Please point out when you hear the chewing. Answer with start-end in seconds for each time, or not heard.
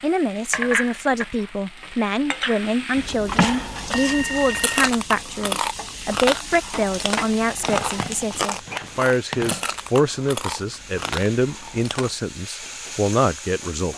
3.0-12.2.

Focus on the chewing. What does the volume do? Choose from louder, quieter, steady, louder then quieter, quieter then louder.
quieter.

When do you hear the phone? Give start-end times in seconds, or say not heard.
3.2-5.0, 7.7-9.7.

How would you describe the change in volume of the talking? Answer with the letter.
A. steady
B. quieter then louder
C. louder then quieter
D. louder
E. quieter
A.